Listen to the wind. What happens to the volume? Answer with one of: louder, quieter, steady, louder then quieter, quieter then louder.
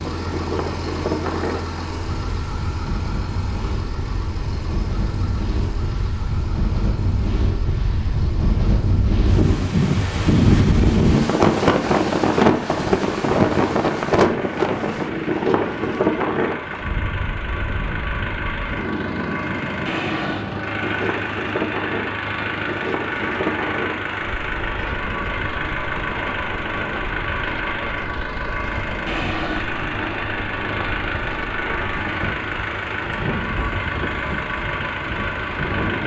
louder then quieter.